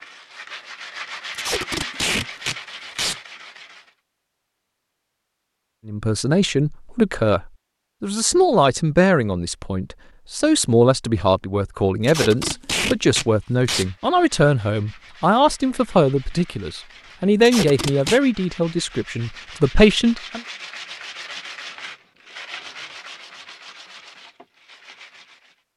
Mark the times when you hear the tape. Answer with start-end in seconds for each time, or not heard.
1.3-3.1, 12.0-13.8, 17.4-18.2.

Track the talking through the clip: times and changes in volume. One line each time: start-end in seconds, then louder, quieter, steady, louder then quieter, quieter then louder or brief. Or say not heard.
5.8-20.4 steady.